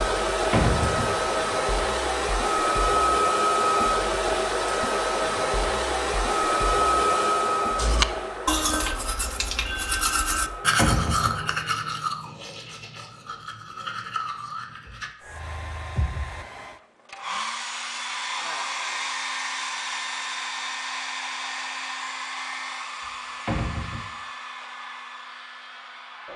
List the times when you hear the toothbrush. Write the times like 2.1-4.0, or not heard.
7.8-15.2.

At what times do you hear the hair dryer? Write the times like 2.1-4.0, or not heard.
0.0-11.7, 15.2-26.3.